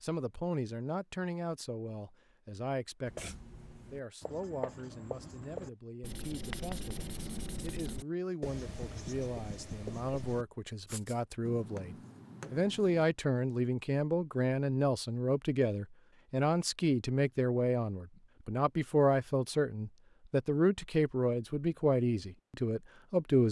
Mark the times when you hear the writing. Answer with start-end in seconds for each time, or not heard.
3.0-13.1.